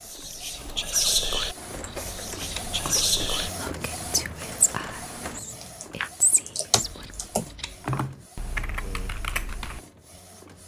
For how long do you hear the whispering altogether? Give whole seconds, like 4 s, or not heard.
7 s.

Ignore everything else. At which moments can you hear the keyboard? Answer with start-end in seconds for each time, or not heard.
1.6-9.8.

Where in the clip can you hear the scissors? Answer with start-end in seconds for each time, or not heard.
1.8-3.0, 6.8-8.0.